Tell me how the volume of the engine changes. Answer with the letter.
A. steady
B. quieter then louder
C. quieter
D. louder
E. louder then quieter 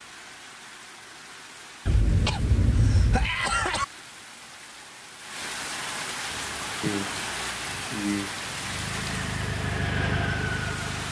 D.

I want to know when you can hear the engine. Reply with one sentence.
You can hear the engine from 6.2 to 11.0 s.